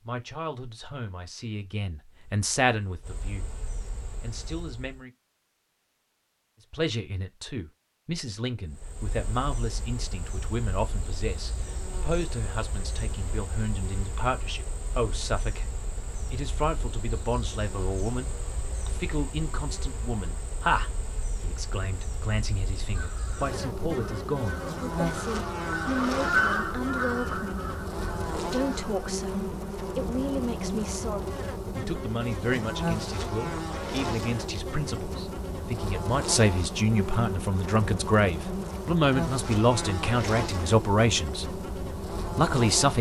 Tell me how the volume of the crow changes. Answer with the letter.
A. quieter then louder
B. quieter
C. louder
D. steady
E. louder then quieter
E.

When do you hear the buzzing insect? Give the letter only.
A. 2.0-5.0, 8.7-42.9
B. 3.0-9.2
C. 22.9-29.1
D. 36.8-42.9
A.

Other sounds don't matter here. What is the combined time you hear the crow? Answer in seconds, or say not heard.
6 s.